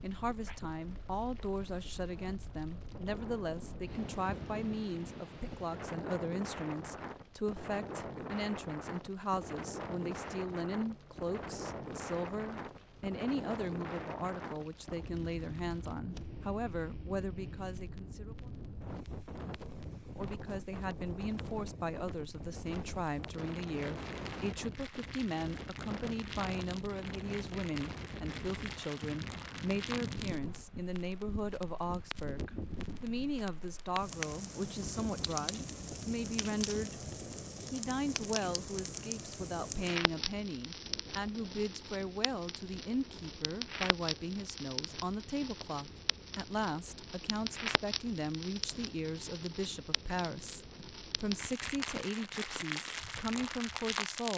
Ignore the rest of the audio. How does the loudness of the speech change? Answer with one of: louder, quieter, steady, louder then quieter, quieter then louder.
steady.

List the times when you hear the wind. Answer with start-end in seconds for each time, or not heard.
0.0-54.3.